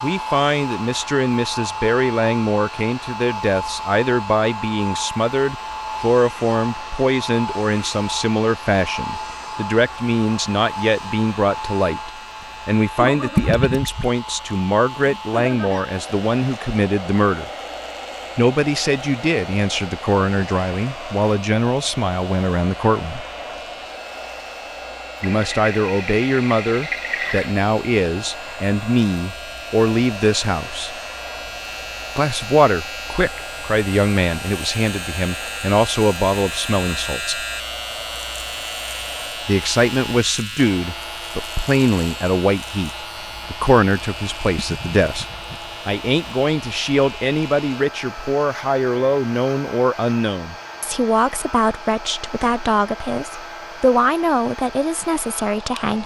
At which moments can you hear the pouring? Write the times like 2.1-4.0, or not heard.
13.3-14.1, 25.2-27.6, 44.5-45.6.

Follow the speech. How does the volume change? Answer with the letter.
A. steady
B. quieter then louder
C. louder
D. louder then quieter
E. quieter
A.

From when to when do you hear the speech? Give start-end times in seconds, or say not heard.
0.0-17.5, 18.4-23.2, 25.2-30.9, 32.1-37.5, 39.5-45.2, 45.9-56.0.